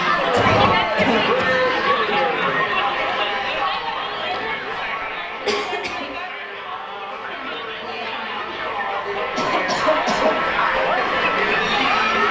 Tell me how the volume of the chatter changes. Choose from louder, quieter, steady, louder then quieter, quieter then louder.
quieter then louder.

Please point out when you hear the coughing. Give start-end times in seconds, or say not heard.
0.3-1.8, 5.5-6.0, 9.3-10.3.